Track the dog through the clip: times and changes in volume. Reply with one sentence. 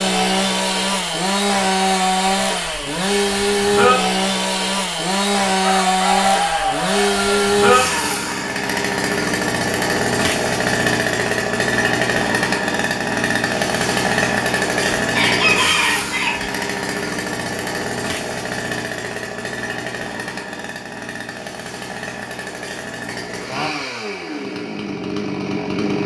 The dog can't be heard in this clip.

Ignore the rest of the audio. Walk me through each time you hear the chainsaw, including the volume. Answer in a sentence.
You can hear the chainsaw from 0.0 to 26.0 s, getting quieter.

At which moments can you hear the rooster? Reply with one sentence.
The rooster can be heard from 5.6 to 7.5 s and from 15.1 to 16.5 s.